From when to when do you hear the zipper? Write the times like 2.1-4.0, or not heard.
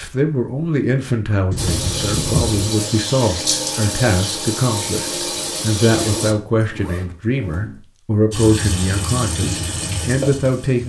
1.5-2.6, 5.9-7.8.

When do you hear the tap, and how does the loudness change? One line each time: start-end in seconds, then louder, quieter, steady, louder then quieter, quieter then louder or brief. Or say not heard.
1.6-6.3 steady
8.3-10.8 brief.